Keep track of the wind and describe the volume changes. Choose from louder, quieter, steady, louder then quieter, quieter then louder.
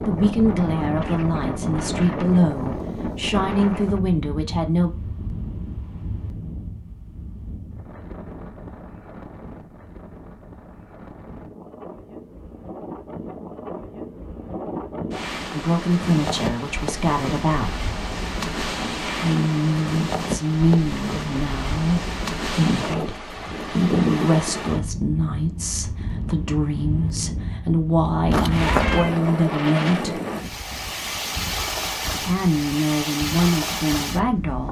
quieter then louder.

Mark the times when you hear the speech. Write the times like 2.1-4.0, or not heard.
0.1-4.9, 15.5-17.8, 19.1-30.2, 32.2-34.6.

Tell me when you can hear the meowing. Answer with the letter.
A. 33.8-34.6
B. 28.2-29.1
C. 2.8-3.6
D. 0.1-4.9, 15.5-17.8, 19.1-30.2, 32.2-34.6
B.